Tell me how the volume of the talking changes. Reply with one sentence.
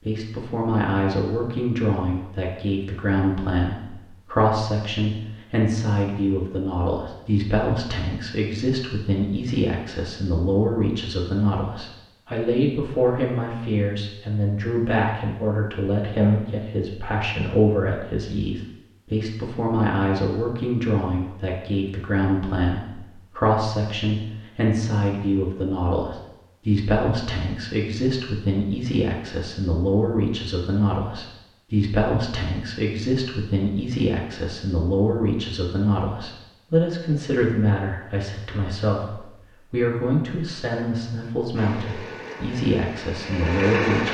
The volume of the talking stays about the same.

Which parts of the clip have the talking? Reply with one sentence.
The talking can be heard from 0.1 to 44.0 s.